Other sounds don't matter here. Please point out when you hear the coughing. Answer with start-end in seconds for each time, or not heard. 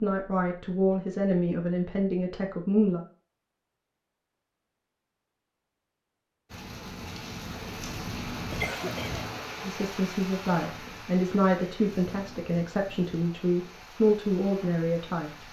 8.5-9.2.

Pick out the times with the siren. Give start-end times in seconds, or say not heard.
not heard.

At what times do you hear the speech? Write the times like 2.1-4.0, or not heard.
0.0-3.0, 9.6-15.4.